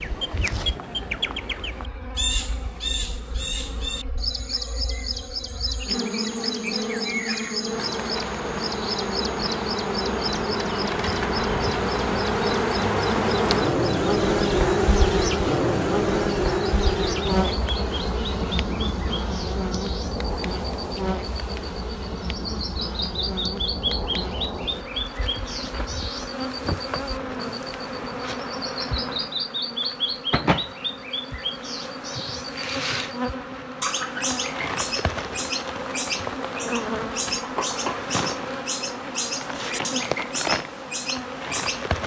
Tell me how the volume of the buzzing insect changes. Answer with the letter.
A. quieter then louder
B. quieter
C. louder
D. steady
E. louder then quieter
E.